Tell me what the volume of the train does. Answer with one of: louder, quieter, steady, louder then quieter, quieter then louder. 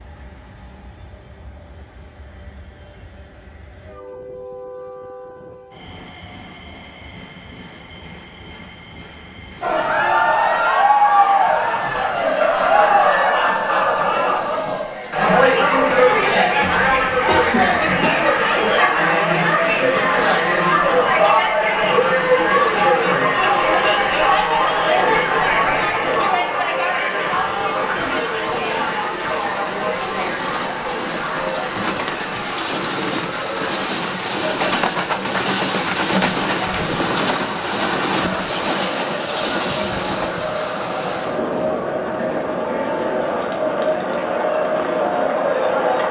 louder.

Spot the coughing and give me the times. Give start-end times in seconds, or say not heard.
16.6-18.1.